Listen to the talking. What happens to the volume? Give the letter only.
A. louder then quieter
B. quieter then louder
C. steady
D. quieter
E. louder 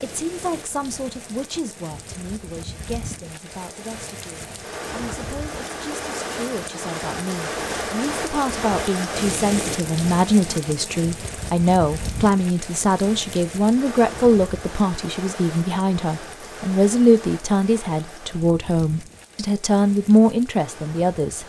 E.